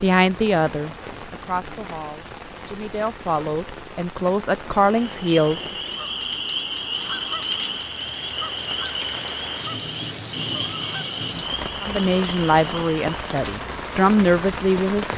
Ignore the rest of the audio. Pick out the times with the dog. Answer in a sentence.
The dog can't be heard in this clip.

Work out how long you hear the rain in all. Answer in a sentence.
The rain can be heard for 15 seconds in total.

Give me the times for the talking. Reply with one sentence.
You can hear the talking from 0.0 to 5.7 s and from 11.8 to 15.1 s.